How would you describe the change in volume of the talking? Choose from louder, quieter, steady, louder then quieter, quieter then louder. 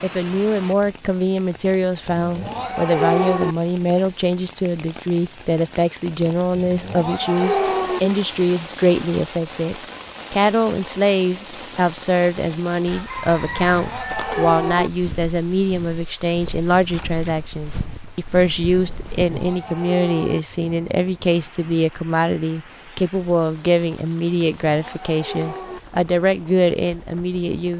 steady.